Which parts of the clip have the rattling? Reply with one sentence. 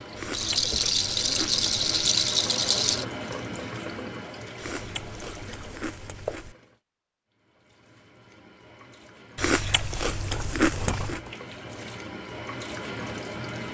You can hear the rattling from 0.3 to 3.0 s and from 10.2 to 11.3 s.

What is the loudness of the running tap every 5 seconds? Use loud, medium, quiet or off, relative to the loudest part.
loud, medium, loud.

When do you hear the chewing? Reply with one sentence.
The chewing can be heard from 0.1 to 2.1 s, from 4.5 to 6.5 s and from 9.3 to 11.2 s.